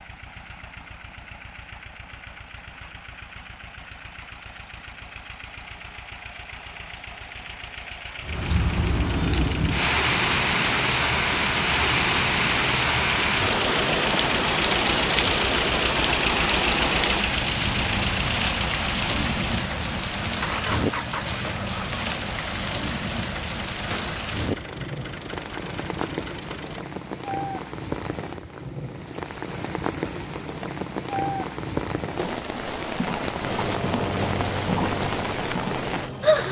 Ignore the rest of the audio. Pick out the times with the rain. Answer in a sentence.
The rain can be heard from 8.2 to 36.4 s.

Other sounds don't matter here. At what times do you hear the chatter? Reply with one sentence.
The chatter can't be heard in this clip.